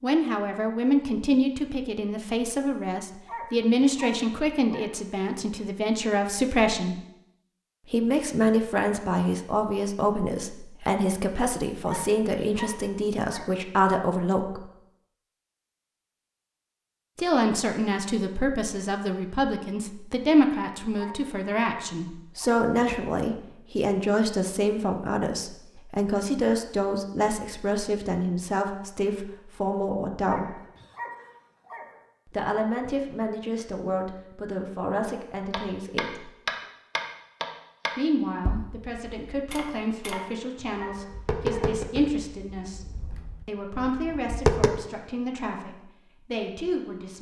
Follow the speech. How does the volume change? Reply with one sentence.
The volume of the speech goes down.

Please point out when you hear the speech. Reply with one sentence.
The speech can be heard from 0.0 to 7.0 s, from 7.9 to 14.7 s, from 17.1 to 30.6 s, from 32.3 to 36.3 s, from 38.0 to 42.9 s and from 43.5 to 47.1 s.